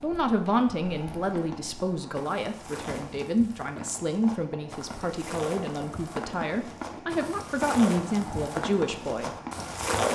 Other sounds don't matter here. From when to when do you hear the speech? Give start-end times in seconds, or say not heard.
0.0-9.3.